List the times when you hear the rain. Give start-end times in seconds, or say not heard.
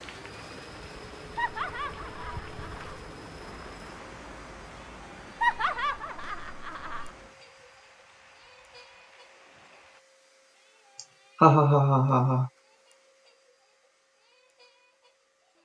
0.0-10.1.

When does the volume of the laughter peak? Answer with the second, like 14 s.
12 s.